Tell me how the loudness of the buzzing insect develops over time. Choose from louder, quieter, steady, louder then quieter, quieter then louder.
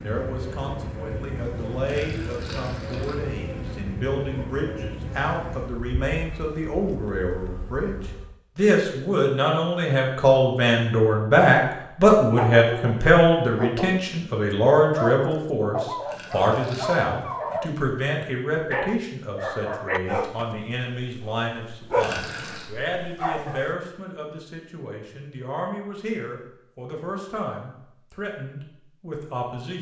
quieter.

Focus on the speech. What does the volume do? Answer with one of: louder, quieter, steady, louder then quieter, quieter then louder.
louder then quieter.